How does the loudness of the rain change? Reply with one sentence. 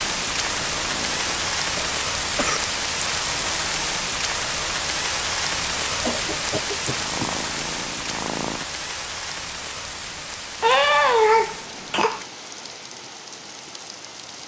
The loudness of the rain goes down.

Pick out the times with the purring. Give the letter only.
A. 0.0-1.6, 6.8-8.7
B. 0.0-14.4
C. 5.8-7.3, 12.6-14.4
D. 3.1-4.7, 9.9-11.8
A.